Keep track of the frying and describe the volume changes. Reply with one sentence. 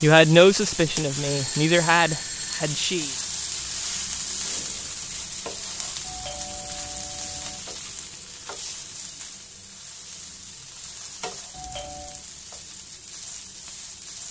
The volume of the frying goes down.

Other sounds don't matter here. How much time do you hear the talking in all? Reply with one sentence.
The talking can be heard for 3 seconds in total.